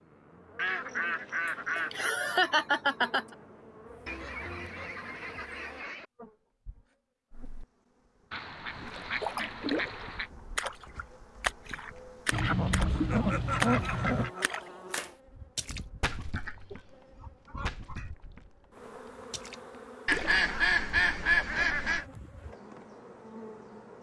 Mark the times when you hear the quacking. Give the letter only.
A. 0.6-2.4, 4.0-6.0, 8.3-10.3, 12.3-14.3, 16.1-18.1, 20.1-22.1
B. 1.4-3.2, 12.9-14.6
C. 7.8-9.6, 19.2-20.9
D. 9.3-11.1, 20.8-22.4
A.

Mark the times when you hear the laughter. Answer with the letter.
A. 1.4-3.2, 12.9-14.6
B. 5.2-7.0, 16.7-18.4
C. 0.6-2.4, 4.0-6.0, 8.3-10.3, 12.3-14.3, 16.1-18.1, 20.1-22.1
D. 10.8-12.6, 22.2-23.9
A.